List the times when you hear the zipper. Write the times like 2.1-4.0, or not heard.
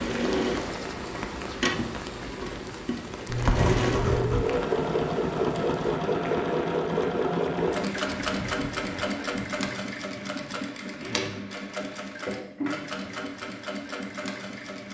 3.2-4.5, 10.2-11.4.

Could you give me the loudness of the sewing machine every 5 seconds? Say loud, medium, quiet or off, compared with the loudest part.
loud, loud, medium.